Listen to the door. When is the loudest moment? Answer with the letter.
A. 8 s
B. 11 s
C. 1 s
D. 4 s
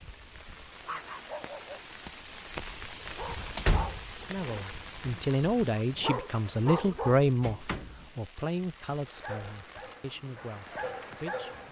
D.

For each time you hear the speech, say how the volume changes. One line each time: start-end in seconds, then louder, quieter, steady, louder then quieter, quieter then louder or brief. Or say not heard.
4.2-11.6 quieter.